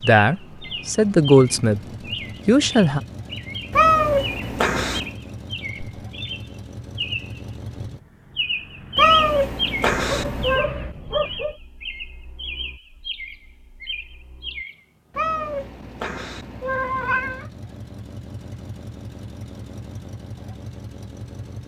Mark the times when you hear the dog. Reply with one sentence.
You can hear the dog from 10.0 to 11.6 s.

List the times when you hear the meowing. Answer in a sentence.
The meowing can be heard from 3.7 to 5.1 s, from 8.9 to 10.7 s and from 15.2 to 17.5 s.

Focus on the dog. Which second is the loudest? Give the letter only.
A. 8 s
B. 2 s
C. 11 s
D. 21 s
C.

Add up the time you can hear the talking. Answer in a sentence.
You can hear the talking for 2 seconds altogether.